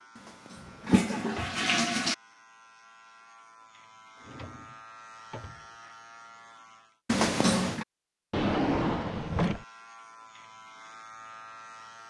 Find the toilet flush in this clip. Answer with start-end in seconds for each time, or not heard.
0.2-2.1, 7.0-7.8.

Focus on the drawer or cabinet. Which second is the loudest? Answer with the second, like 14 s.
9 s.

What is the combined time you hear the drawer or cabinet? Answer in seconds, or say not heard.
4 s.